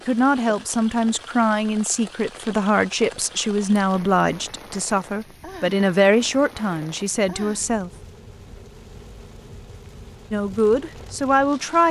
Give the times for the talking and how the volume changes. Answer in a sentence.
You can hear the talking from 0.1 to 7.9 s, at a steady volume; and briefly from 10.3 to 11.8 s.